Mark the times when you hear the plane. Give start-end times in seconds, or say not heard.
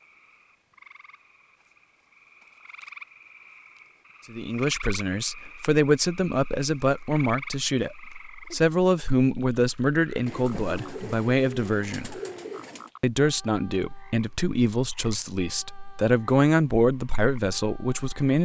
not heard.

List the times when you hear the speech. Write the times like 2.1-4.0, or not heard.
4.3-12.2, 13.0-18.4.